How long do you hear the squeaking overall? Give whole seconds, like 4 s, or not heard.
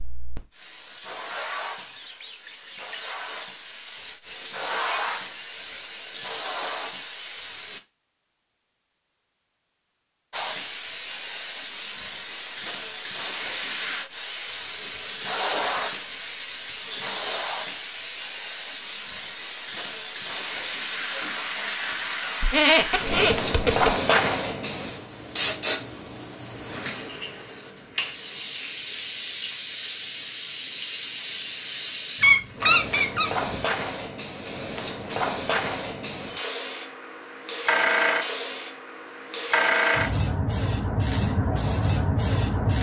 4 s.